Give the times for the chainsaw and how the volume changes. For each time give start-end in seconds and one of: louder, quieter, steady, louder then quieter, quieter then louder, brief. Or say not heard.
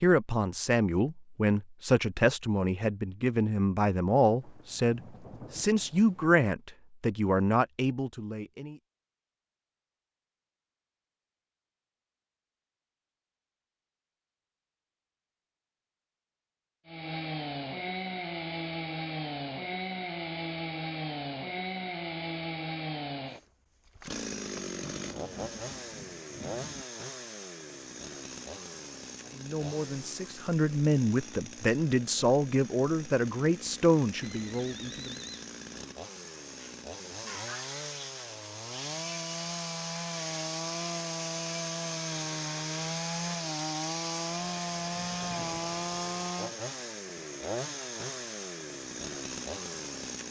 16.9-50.2 quieter then louder.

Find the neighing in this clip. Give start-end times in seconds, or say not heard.
34.2-35.5.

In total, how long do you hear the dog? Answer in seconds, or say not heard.
not heard.